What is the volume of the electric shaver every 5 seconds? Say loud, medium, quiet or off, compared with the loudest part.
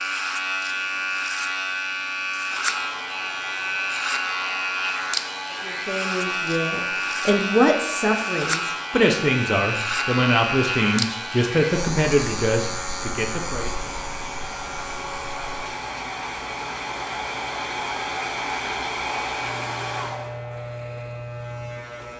loud, loud, loud, quiet, medium.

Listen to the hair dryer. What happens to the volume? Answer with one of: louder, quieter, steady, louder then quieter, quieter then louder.
louder.